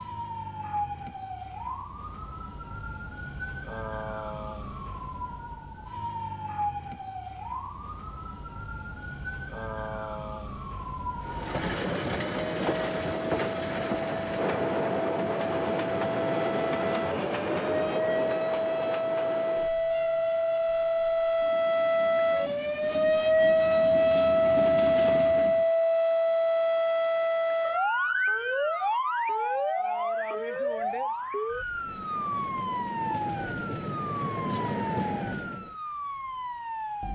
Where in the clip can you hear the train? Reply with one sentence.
The train can be heard from 11.2 to 25.7 s and from 31.6 to 35.8 s.